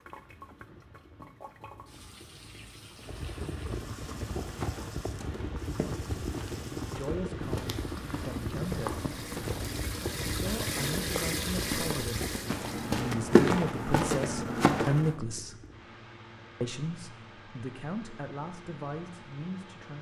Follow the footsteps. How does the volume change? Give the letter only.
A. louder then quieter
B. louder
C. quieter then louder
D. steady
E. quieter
B.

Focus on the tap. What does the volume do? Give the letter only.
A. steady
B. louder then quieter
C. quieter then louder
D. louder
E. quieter
D.